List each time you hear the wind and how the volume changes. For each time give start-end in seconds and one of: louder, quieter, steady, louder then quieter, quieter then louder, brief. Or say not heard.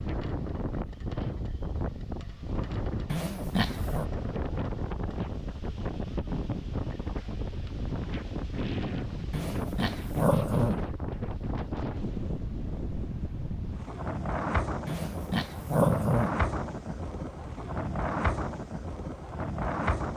0.0-20.1 steady.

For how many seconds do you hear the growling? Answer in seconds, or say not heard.
4 s.